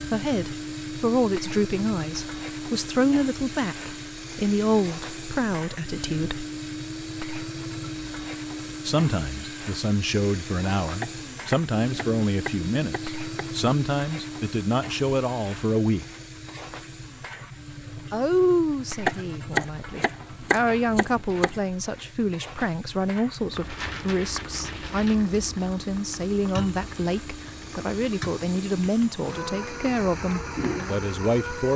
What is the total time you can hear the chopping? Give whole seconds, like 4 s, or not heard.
5 s.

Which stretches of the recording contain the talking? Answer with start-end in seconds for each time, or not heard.
0.0-6.5, 8.8-16.1, 18.1-31.7.